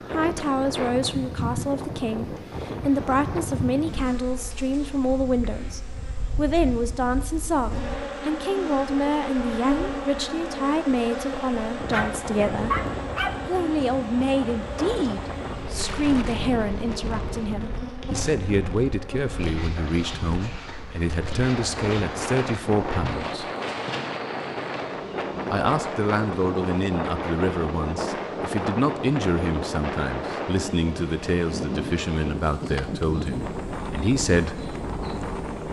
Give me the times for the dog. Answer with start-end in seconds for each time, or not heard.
11.9-13.3.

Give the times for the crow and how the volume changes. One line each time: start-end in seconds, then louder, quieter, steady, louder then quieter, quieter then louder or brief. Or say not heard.
not heard.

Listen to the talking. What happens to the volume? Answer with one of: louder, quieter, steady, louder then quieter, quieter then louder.
steady.